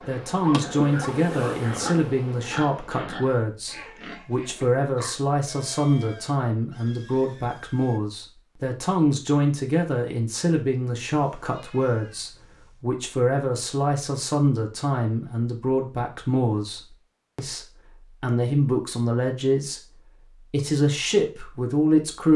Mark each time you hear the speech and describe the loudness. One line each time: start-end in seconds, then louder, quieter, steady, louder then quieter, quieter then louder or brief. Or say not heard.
0.0-22.3 steady.